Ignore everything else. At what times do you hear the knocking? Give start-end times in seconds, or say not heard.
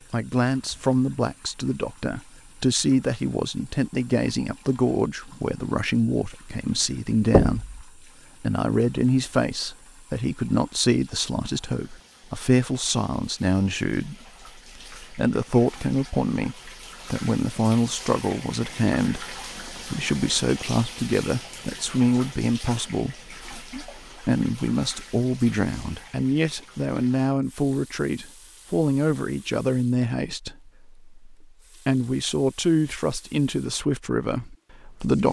7.3-7.8.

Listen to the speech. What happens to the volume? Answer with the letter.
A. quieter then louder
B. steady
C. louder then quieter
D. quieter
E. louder
B.